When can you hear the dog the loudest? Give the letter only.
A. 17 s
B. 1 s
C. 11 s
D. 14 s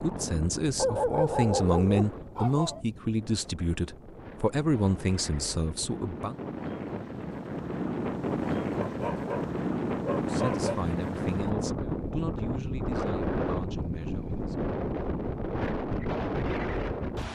B.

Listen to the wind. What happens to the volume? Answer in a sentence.
The loudness of the wind goes up.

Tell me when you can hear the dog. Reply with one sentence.
The dog can be heard from 0.8 to 2.8 s and from 8.8 to 10.8 s.